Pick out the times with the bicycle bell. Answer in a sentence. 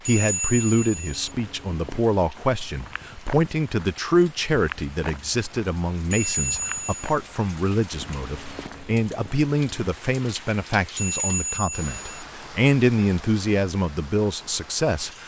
The bicycle bell can be heard from 0.1 to 1.1 s, from 6.1 to 7.2 s and from 10.9 to 12.2 s.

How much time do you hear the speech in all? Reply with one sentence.
The speech can be heard for 15 seconds in total.